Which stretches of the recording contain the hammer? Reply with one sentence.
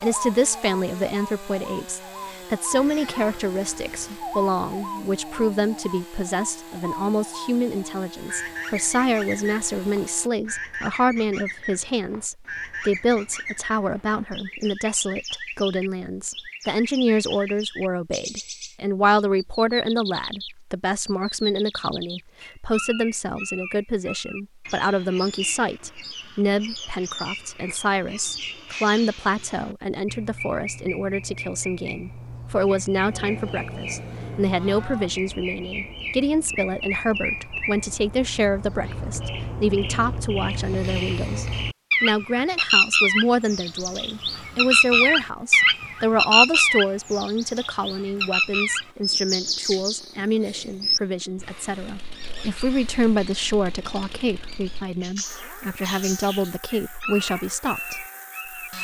The hammer can't be heard in this clip.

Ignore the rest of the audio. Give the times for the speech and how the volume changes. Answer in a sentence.
You can hear the speech from 0.0 to 58.0 s, at a steady volume.